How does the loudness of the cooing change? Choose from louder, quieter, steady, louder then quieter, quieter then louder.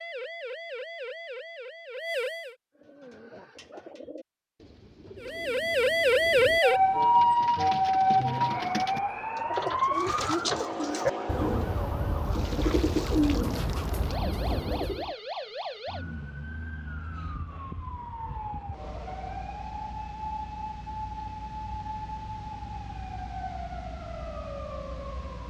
louder.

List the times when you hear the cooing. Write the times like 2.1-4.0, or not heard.
2.8-15.1.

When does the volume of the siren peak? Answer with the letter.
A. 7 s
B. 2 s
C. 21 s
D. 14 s
A.